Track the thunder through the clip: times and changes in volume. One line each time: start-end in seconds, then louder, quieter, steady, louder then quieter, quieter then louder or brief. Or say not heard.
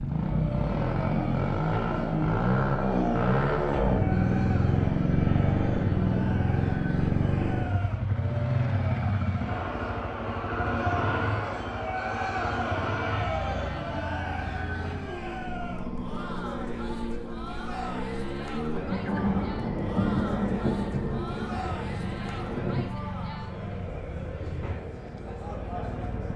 18.7-22.9 quieter.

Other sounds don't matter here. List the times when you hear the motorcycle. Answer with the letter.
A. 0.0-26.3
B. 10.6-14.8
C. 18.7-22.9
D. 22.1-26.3
A.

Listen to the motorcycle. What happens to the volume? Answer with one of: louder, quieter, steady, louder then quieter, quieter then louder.
quieter.